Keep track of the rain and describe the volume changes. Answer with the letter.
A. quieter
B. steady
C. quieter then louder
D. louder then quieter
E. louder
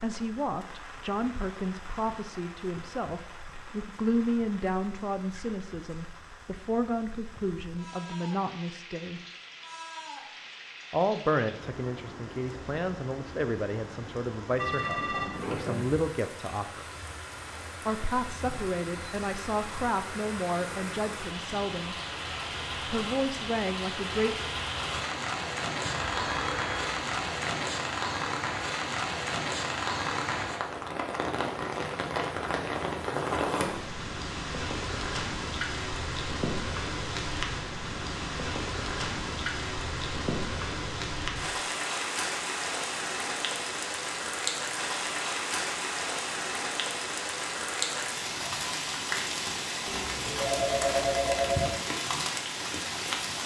E.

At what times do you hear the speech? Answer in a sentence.
You can hear the speech from 0.0 to 9.2 s, from 10.9 to 16.9 s, from 17.9 to 21.9 s and from 22.9 to 24.4 s.